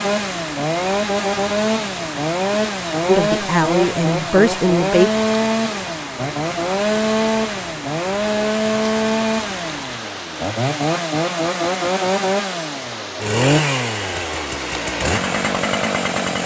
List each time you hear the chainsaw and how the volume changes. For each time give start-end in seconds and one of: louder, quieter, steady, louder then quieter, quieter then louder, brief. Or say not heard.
0.0-16.4 steady.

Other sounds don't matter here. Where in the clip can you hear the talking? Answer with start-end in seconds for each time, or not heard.
3.0-5.1.